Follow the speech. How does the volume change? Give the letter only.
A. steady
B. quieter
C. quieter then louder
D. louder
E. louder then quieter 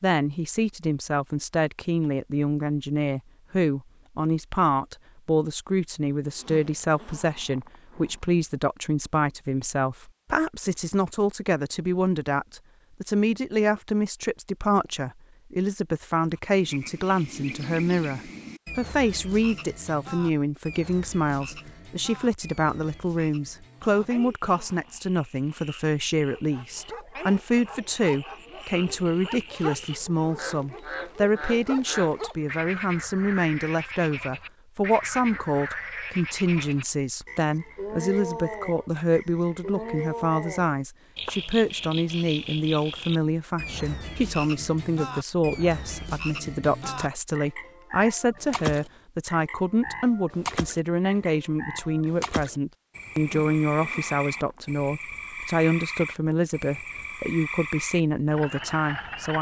A.